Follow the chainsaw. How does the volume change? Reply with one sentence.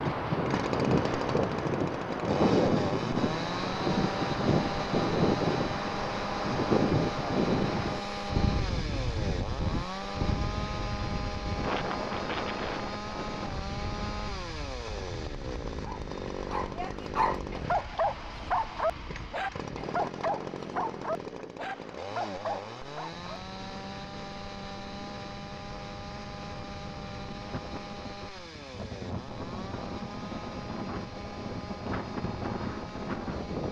The loudness of the chainsaw goes down.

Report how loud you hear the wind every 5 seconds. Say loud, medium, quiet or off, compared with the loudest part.
loud, loud, medium, quiet, quiet, quiet, medium.